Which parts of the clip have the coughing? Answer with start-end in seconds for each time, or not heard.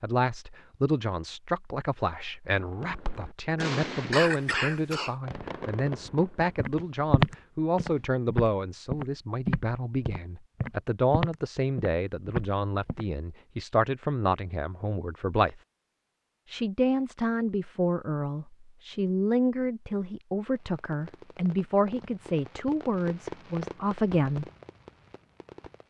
4.1-5.2.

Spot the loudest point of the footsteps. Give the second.
7 s.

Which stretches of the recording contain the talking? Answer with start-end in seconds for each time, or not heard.
0.0-15.6, 16.5-24.4.